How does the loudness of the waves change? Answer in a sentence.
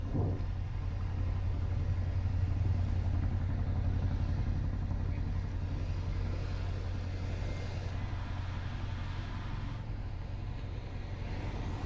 The volume of the waves goes up.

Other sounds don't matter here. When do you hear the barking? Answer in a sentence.
The barking can't be heard in this clip.